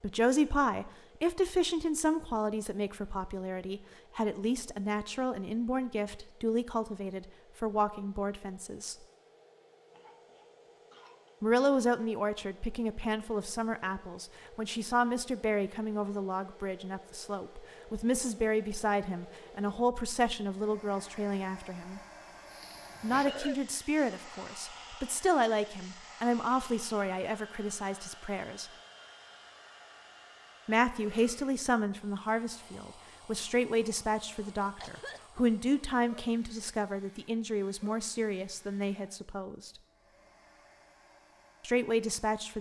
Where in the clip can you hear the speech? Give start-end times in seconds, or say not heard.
0.0-8.9, 11.4-22.0, 23.0-28.7, 30.6-39.7, 41.6-42.5.